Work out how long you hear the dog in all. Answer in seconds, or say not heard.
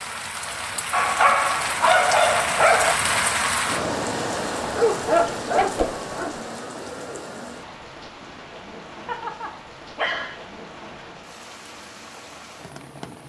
5 s.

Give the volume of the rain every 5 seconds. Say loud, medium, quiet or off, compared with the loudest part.
loud, medium, quiet.